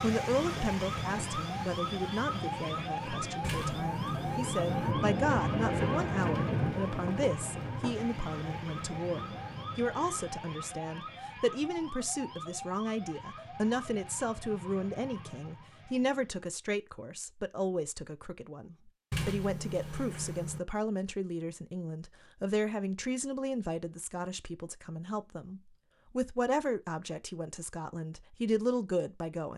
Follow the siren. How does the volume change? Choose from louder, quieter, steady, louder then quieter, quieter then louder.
quieter.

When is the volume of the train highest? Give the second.
6 s.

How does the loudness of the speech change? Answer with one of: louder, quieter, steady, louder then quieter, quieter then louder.
steady.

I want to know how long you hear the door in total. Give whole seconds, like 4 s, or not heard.
3 s.